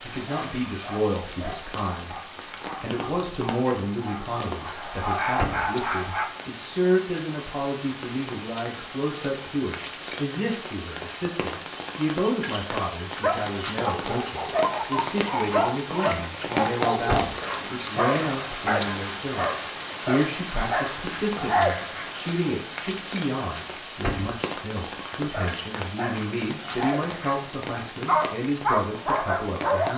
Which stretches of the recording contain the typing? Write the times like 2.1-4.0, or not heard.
not heard.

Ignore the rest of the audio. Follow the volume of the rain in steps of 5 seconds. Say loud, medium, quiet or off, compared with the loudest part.
medium, medium, loud, loud, loud, medium.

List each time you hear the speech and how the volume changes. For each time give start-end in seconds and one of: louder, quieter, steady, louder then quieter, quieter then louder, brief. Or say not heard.
0.0-29.9 steady.